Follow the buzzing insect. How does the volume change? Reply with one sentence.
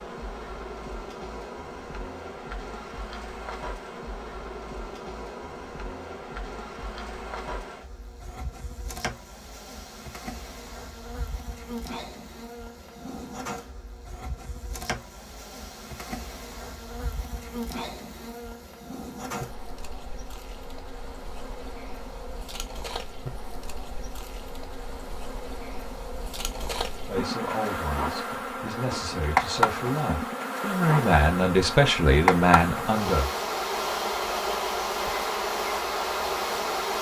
The volume of the buzzing insect goes up.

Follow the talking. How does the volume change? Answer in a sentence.
The volume of the talking goes up.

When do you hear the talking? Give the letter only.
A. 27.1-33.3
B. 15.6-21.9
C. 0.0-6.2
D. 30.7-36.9
A.